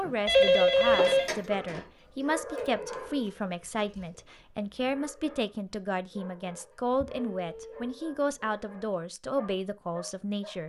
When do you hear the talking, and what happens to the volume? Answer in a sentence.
The talking can be heard from 0.0 to 10.6 s, at a steady volume.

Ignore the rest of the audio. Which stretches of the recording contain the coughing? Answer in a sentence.
You can't hear the coughing here.